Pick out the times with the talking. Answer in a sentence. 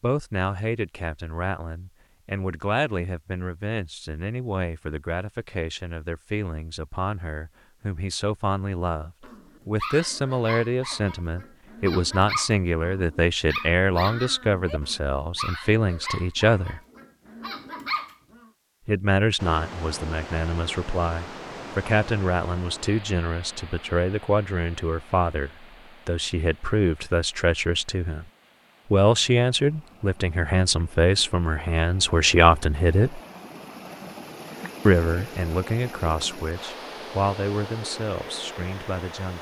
The talking can be heard from 0.0 to 16.8 s, from 18.9 to 28.2 s, from 28.9 to 33.2 s and from 34.9 to 39.3 s.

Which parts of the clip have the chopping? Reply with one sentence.
The chopping can't be heard in this clip.